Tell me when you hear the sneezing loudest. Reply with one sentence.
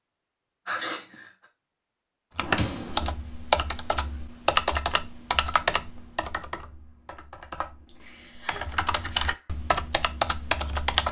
The loudest moment of the sneezing is at 1 second.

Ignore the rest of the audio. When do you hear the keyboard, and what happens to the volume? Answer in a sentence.
The keyboard can be heard from 2.4 to 11.0 s, getting quieter then louder.